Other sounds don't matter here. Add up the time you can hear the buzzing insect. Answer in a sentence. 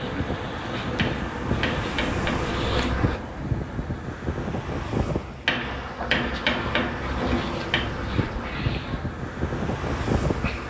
The buzzing insect can be heard for 8 seconds in total.